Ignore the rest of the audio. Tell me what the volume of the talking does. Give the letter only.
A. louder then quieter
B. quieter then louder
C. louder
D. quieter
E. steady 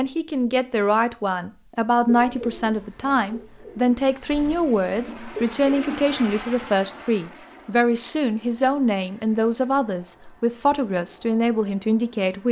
E.